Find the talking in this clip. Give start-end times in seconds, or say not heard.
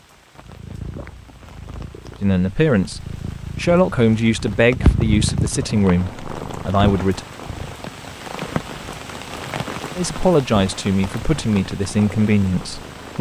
2.2-7.2, 9.9-13.1.